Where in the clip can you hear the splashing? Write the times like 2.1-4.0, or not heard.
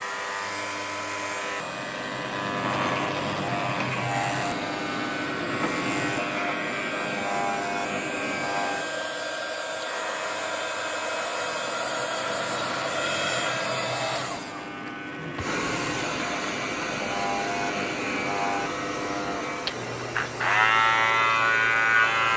not heard.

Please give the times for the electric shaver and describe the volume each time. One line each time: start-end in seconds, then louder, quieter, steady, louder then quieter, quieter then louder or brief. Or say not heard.
0.0-22.3 quieter then louder.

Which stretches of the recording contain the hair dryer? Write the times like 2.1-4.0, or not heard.
0.0-22.3.